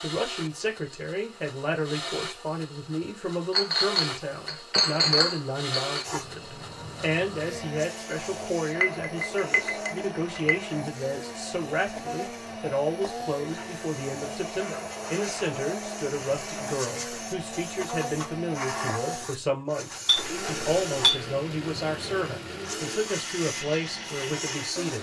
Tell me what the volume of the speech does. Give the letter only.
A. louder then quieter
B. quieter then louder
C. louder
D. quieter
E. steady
E.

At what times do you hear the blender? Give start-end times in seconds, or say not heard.
0.0-24.9.